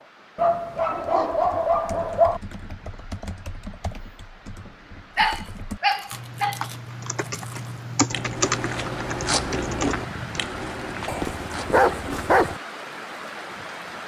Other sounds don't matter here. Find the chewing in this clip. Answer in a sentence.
The chewing can be heard from 5.2 to 12.3 s.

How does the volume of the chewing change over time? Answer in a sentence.
The volume of the chewing goes up, then down.